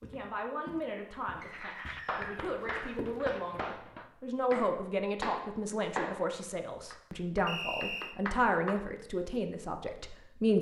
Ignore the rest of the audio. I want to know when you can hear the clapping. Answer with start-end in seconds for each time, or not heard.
1.4-6.3, 6.9-8.8.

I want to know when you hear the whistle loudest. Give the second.
8 s.